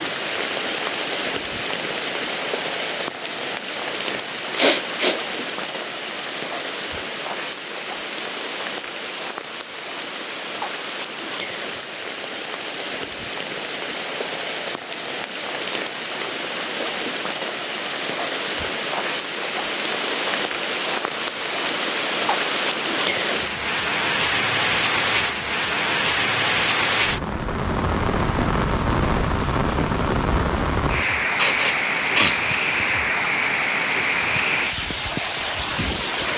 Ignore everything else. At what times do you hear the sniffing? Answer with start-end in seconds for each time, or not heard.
4.5-5.2, 31.3-32.4.